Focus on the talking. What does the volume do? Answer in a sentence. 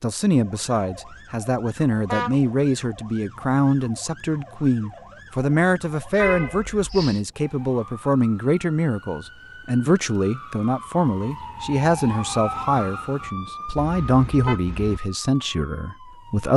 The loudness of the talking stays about the same.